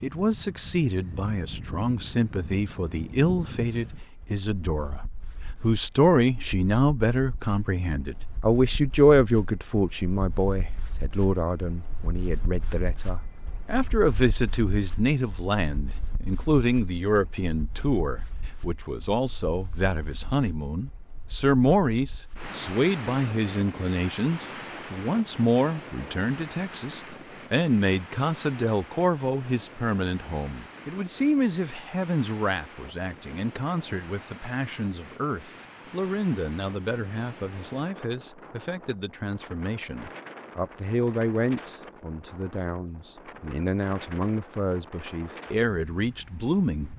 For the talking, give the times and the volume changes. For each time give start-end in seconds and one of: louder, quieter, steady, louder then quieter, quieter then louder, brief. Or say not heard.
0.0-46.9 quieter.